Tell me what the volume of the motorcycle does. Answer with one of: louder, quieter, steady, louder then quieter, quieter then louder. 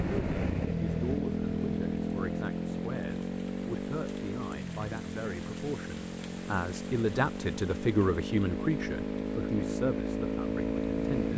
quieter then louder.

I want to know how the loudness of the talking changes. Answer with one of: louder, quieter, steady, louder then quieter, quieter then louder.
louder then quieter.